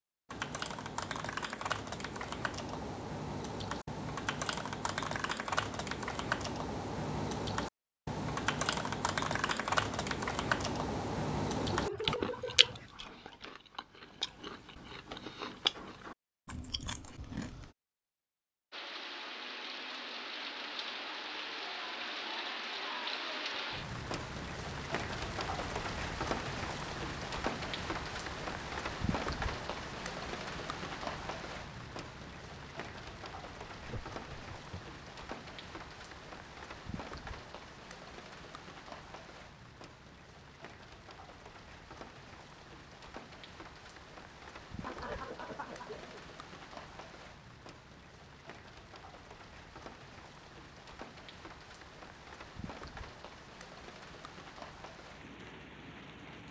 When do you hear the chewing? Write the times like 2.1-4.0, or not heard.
12.0-17.7.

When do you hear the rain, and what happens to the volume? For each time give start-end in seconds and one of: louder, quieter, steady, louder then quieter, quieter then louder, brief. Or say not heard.
18.7-56.4 quieter.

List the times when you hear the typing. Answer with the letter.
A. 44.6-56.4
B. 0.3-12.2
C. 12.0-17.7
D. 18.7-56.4
B.